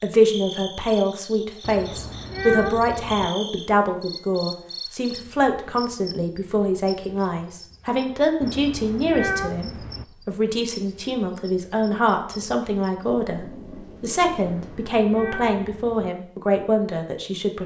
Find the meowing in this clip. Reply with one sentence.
The meowing can be heard from 1.6 to 3.3 s, from 8.4 to 10.1 s and from 14.4 to 16.1 s.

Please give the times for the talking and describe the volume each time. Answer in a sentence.
The talking can be heard from 0.0 to 17.6 s, at a steady volume.